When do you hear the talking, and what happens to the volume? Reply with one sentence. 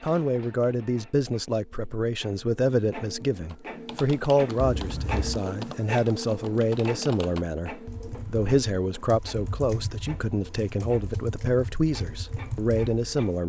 The talking can be heard from 0.0 to 13.4 s, at a steady volume.